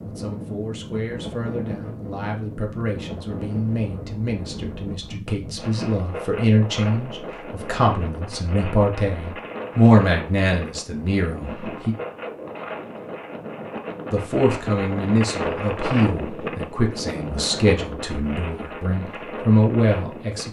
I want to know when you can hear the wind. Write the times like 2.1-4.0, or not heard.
0.0-20.4.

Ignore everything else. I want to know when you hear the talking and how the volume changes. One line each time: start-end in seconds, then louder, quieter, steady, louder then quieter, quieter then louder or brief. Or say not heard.
0.1-11.9 louder
14.1-20.4 quieter then louder.